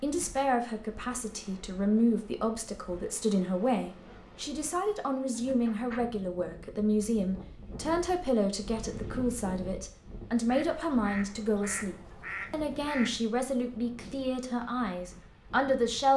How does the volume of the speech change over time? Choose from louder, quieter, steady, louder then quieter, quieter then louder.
steady.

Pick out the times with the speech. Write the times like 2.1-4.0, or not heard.
0.0-16.1.